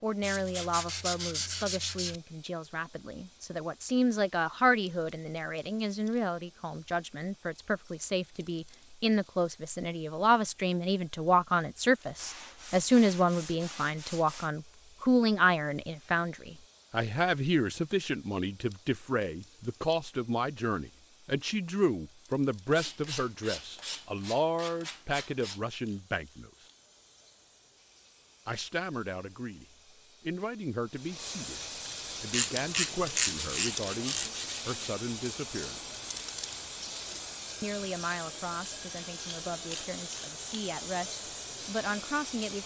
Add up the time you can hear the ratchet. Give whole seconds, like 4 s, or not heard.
2 s.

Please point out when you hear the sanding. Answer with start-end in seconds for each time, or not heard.
0.2-2.2, 12.2-14.5, 22.7-25.6, 33.3-34.9.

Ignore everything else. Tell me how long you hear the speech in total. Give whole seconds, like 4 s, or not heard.
39 s.